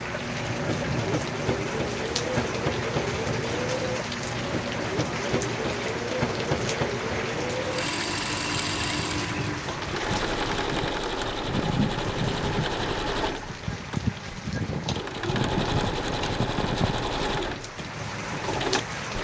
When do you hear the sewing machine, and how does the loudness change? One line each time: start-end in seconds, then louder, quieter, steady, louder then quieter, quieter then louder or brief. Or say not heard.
0.0-19.1 steady.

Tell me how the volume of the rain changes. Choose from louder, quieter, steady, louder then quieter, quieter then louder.
steady.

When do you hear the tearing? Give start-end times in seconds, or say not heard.
not heard.